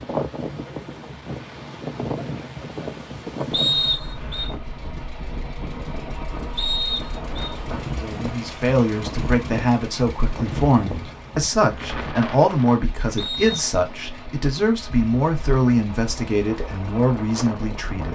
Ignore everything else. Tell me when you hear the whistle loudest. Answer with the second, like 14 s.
4 s.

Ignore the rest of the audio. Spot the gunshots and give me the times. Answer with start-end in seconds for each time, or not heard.
not heard.